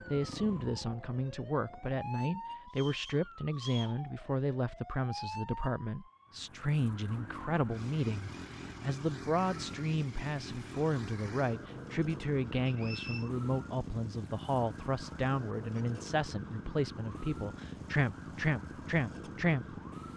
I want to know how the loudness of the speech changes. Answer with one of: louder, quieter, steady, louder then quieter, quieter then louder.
steady.